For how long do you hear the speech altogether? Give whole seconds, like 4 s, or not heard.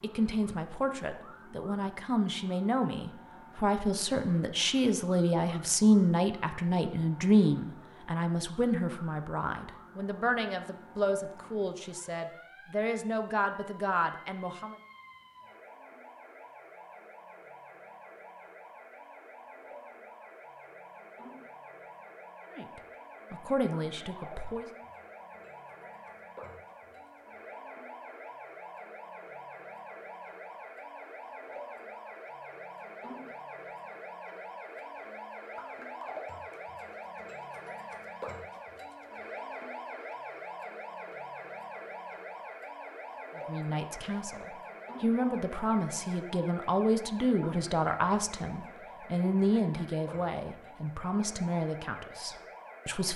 27 s.